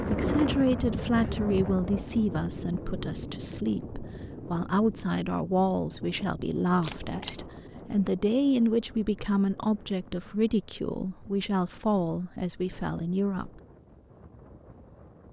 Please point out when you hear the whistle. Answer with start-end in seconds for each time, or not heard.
not heard.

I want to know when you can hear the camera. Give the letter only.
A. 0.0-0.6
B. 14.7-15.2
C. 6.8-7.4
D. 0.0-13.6
C.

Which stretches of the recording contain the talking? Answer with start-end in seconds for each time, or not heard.
0.0-13.6.